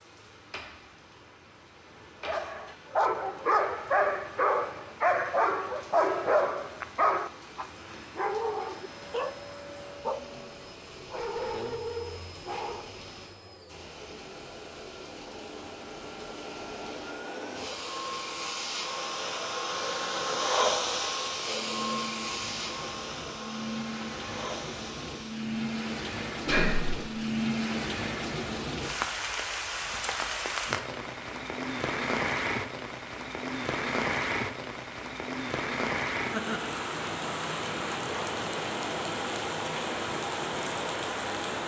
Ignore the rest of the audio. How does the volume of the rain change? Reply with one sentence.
The volume of the rain goes up.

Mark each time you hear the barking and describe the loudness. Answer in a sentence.
You can hear the barking from 2.2 to 13.1 s, getting quieter.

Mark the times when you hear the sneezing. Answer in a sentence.
You can hear the sneezing from 26.4 to 27.0 s.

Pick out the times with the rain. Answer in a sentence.
The rain can be heard from 0.0 to 41.6 s.